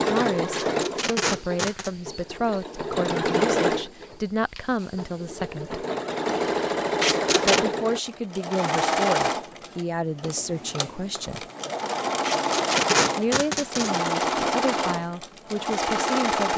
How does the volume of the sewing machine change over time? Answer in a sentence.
The loudness of the sewing machine stays about the same.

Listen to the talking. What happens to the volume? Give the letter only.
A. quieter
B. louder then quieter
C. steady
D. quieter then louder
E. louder
C.